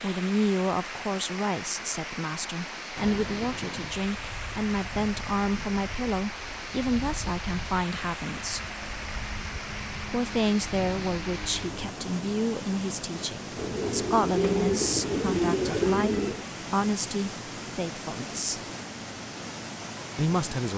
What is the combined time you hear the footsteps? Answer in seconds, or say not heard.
not heard.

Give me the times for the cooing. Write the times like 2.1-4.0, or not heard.
13.6-16.4.